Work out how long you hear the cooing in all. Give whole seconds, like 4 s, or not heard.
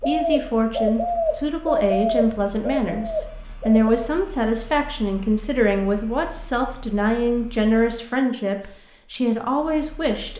4 s.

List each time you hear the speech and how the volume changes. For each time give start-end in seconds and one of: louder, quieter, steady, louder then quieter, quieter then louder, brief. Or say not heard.
0.1-10.3 steady.